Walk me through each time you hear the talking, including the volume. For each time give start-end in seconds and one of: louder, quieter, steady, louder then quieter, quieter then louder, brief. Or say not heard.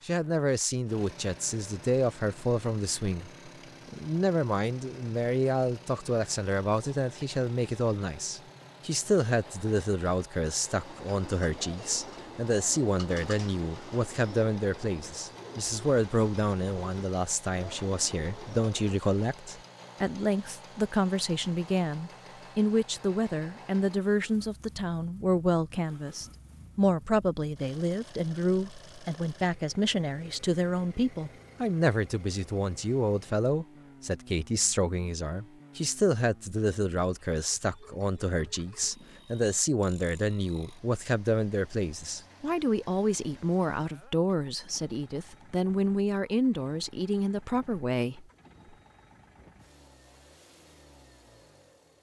0.0-48.2 steady.